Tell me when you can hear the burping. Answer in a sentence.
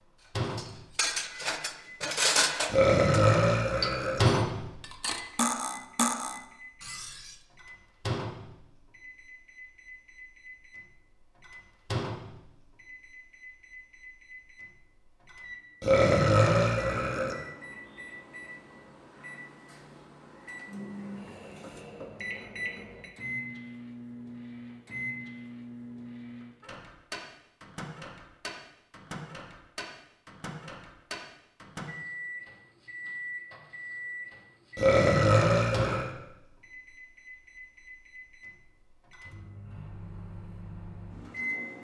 The burping can be heard from 2.6 to 4.2 s, from 15.8 to 17.4 s and from 34.8 to 36.1 s.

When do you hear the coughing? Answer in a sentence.
You can't hear the coughing here.